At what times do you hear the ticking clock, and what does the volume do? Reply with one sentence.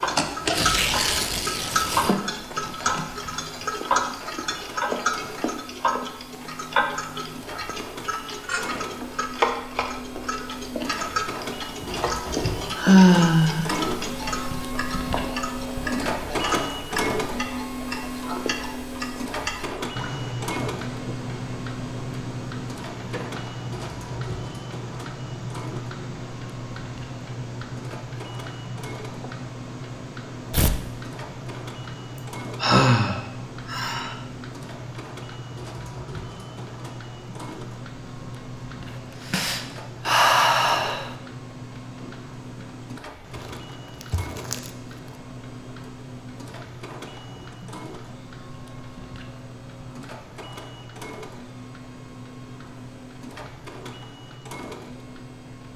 The ticking clock can be heard from 0.0 to 55.7 s, getting quieter.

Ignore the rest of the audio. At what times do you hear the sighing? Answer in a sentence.
You can hear the sighing from 12.1 to 13.7 s, from 32.6 to 34.1 s and from 39.2 to 41.1 s.